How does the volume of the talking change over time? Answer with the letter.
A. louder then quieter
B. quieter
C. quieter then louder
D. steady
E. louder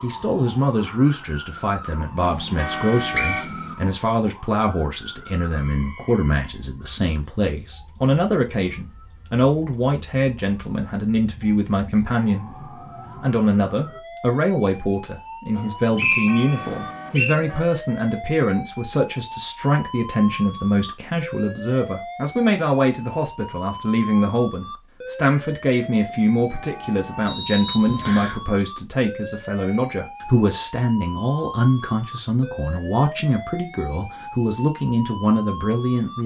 D.